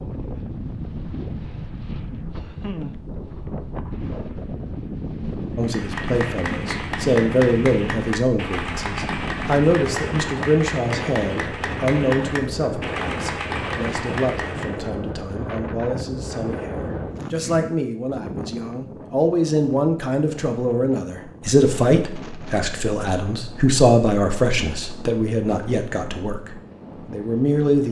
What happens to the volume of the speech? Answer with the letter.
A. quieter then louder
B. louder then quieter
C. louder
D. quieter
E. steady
A.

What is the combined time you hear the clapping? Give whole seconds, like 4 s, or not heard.
9 s.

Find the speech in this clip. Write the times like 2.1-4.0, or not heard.
5.5-27.8.